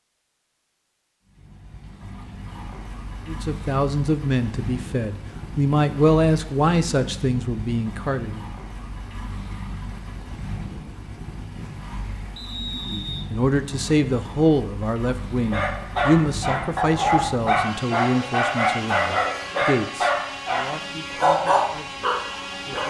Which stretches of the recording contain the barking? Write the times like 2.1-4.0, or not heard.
15.5-22.8.